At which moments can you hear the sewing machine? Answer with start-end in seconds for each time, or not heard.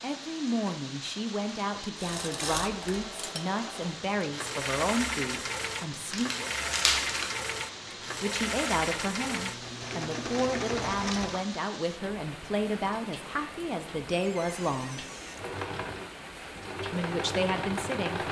1.9-11.4, 15.3-18.2.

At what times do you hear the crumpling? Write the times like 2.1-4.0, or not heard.
6.1-7.2.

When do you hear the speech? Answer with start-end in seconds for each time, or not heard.
0.0-6.3, 8.2-15.1, 16.9-18.2.